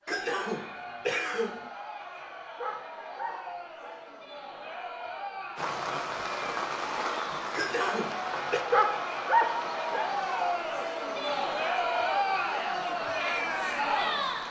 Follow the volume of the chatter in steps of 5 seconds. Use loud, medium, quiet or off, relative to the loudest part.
quiet, medium, loud.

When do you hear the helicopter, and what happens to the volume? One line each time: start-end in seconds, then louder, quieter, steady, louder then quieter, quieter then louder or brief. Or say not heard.
not heard.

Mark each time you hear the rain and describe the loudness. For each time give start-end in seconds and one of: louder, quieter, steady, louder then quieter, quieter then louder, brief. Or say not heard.
5.5-14.4 quieter.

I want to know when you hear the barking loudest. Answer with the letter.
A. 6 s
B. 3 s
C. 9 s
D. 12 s
C.